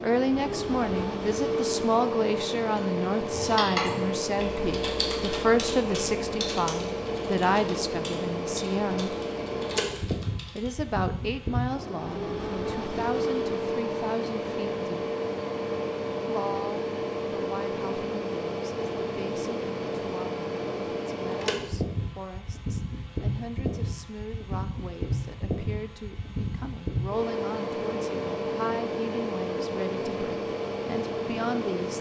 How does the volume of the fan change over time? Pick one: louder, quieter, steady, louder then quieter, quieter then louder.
steady.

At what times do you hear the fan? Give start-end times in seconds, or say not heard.
0.0-31.9.